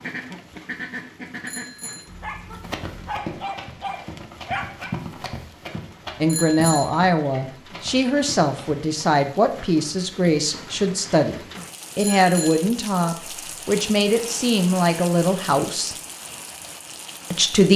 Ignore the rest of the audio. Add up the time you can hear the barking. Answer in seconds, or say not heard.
3 s.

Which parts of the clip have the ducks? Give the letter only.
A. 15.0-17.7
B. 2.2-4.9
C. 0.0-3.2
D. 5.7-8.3
C.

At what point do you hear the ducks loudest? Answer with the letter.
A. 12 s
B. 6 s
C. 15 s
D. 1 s
D.